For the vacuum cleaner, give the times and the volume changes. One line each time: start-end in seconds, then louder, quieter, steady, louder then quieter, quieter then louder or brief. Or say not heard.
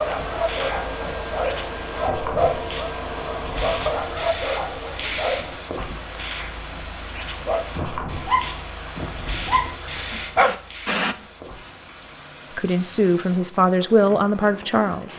0.0-4.3 steady.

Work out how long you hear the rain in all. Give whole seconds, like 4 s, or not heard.
15 s.